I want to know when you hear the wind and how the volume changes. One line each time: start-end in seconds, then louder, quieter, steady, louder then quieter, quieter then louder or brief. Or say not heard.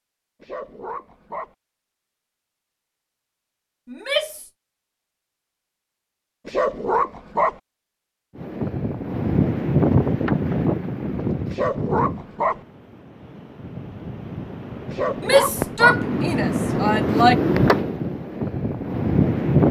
8.3-19.6 quieter then louder.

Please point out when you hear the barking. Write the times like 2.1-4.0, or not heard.
0.4-1.5, 6.5-7.5, 11.5-12.6, 14.9-16.0.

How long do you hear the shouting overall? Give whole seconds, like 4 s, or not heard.
3 s.